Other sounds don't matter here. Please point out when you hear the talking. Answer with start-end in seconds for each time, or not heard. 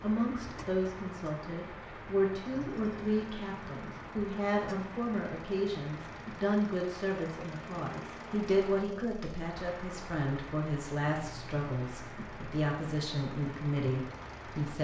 0.0-14.8.